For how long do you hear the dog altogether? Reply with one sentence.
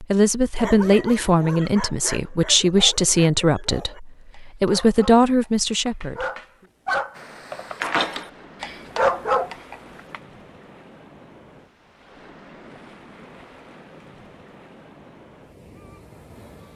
The dog can be heard for 10 seconds in total.